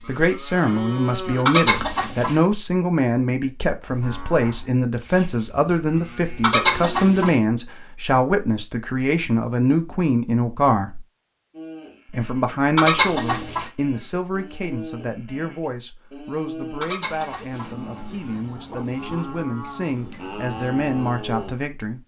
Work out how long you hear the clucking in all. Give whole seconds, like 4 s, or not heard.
4 s.